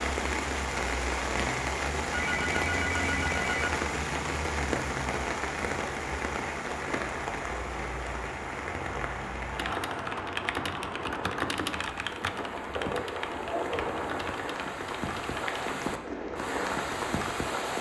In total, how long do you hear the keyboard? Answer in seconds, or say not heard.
6 s.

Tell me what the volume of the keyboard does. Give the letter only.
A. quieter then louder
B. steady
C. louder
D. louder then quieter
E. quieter
E.